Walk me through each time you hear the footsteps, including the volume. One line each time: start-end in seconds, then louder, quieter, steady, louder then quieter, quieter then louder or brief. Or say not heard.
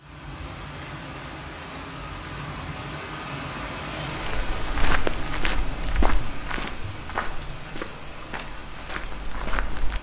4.2-9.9 quieter.